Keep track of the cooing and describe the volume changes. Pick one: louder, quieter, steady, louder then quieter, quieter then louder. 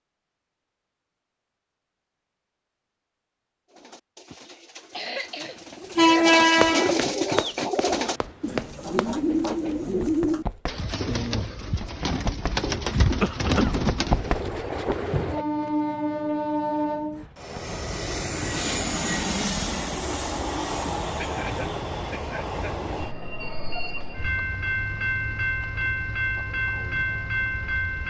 louder.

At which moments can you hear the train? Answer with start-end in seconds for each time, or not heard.
5.9-10.7, 14.0-28.0.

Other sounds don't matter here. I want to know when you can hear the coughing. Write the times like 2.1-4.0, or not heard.
4.5-6.2, 13.2-13.8, 21.1-22.6.